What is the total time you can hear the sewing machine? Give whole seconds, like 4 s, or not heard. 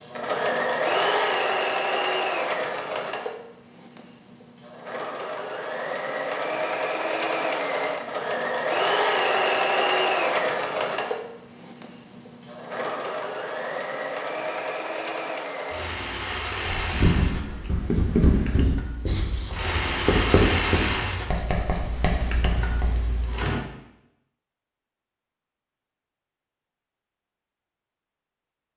24 s.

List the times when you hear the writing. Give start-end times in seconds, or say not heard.
16.6-23.1.